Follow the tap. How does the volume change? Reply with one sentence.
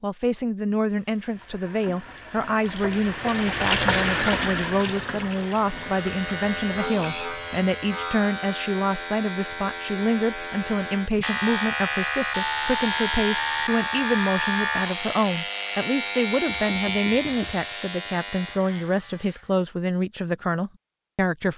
The loudness of the tap goes up, then down.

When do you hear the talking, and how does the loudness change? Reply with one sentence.
You can hear the talking from 0.0 to 21.5 s, at a steady volume.